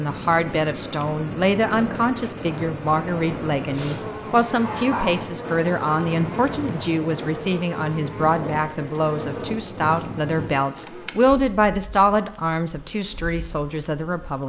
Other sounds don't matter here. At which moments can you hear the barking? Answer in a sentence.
You can hear the barking from 3.7 to 5.2 s.